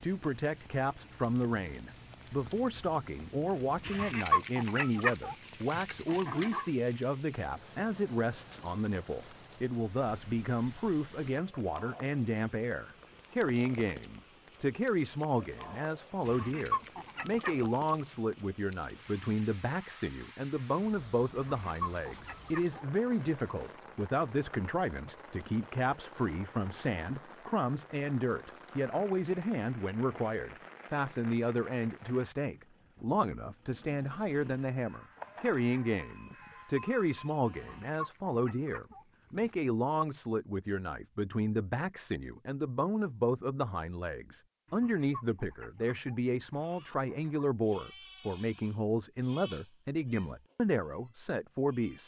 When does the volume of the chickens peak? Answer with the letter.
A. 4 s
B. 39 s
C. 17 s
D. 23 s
A.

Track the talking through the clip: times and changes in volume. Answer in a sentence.
The talking can be heard from 0.0 to 52.0 s, at a steady volume.